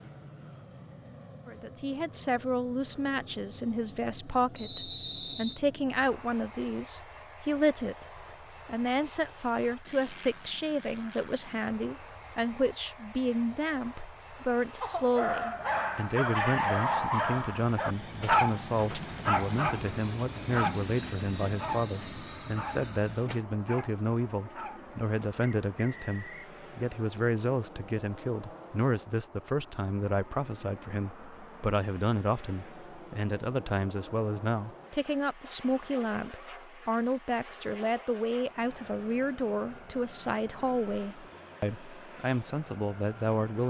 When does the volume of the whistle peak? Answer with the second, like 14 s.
5 s.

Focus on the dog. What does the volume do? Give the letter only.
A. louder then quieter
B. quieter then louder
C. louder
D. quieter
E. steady
D.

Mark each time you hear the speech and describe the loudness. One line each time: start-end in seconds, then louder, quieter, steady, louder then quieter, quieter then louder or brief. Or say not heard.
1.4-43.6 steady.